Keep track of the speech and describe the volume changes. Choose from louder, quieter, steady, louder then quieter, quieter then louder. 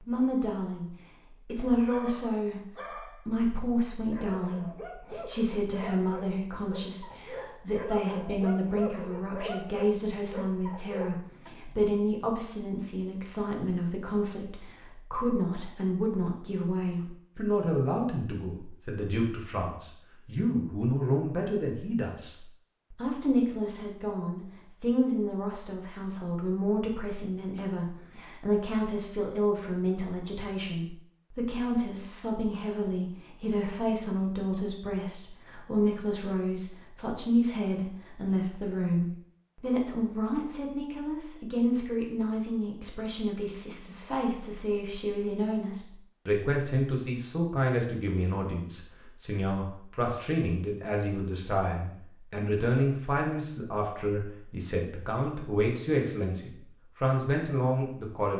steady.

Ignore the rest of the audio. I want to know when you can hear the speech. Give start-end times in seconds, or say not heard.
0.1-58.3.